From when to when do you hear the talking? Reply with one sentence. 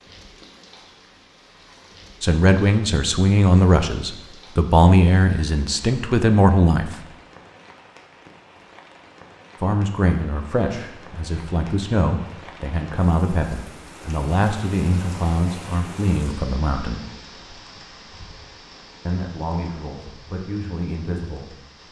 The talking can be heard from 2.2 to 6.9 s, from 9.6 to 17.1 s and from 19.1 to 21.8 s.